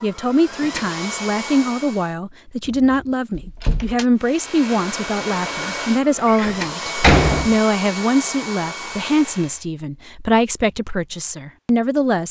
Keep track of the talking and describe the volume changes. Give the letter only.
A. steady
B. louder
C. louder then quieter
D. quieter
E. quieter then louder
A.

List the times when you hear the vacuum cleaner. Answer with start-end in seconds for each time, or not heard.
0.0-2.1, 4.2-9.7.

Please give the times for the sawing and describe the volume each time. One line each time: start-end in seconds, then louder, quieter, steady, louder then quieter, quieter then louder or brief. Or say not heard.
not heard.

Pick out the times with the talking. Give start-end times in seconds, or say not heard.
0.0-12.2.